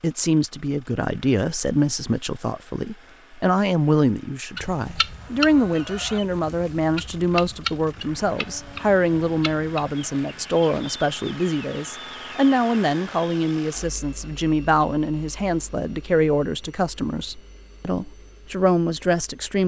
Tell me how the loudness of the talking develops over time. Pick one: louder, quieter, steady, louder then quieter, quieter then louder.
steady.